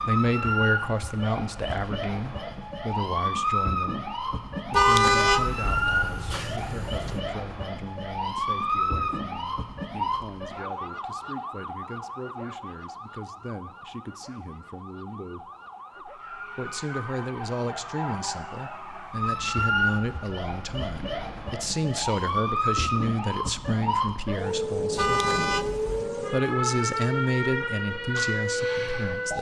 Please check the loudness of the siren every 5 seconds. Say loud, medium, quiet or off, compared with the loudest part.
loud, loud, medium, loud, loud, loud.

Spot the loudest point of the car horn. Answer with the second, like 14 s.
5 s.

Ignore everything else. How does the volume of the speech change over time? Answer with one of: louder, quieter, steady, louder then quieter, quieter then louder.
quieter then louder.